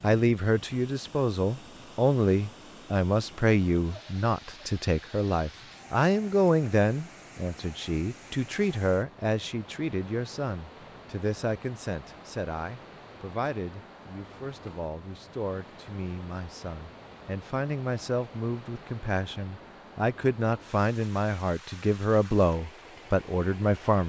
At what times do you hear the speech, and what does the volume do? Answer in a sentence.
You can hear the speech from 0.0 to 24.0 s, getting quieter then louder.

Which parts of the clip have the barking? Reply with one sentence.
The barking can't be heard in this clip.